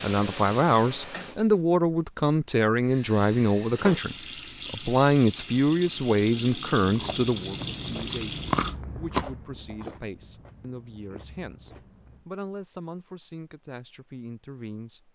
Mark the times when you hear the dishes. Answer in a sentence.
The dishes can't be heard in this clip.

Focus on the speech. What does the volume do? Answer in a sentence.
The loudness of the speech goes down.